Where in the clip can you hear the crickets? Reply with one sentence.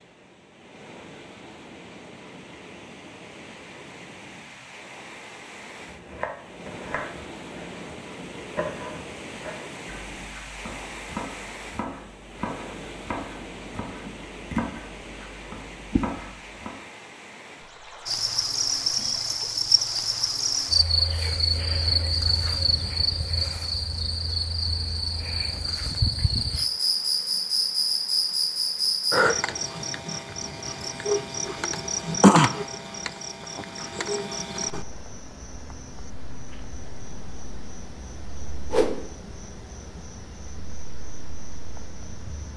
You can hear the crickets from 18.1 to 42.5 s.